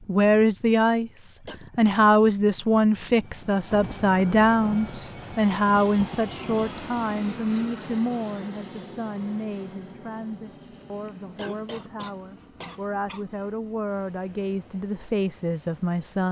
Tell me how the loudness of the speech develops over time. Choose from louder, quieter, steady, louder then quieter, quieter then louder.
quieter then louder.